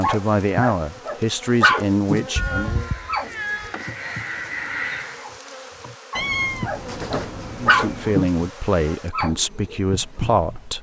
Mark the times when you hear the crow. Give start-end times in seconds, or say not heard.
2.8-5.2.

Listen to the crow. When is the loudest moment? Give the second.
5 s.